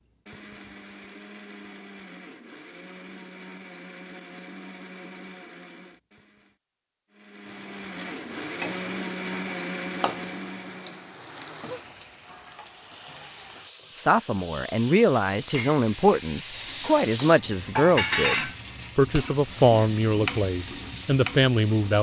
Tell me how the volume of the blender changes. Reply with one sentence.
The volume of the blender goes up.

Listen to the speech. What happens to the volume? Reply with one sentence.
The volume of the speech stays about the same.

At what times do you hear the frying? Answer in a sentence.
The frying can be heard from 7.4 to 21.9 s.